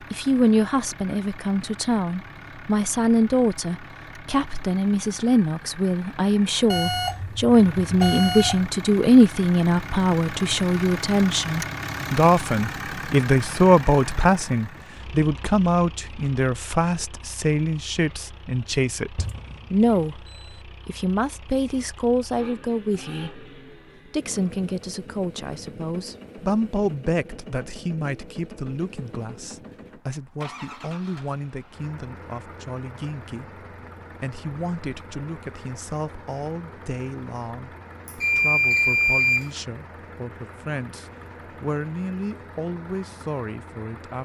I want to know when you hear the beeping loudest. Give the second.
39 s.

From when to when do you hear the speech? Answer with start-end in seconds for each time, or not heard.
0.1-20.2, 20.9-23.4, 24.1-44.2.